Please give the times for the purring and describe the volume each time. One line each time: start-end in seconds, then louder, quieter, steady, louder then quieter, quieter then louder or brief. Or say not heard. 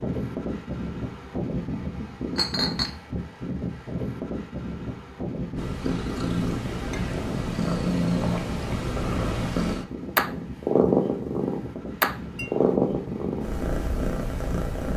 5.5-14.9 louder then quieter.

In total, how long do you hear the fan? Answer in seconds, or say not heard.
15 s.